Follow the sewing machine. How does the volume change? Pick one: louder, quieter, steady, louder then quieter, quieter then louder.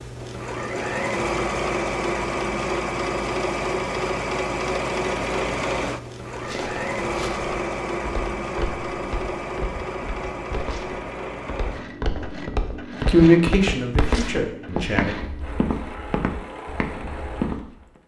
quieter.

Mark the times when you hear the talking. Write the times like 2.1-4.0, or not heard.
13.1-15.2.